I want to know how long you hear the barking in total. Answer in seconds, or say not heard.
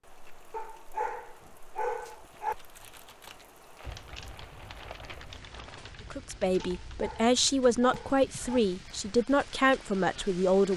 4 s.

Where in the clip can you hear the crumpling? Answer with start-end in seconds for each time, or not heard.
3.8-6.0.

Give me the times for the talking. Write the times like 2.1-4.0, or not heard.
6.1-10.7.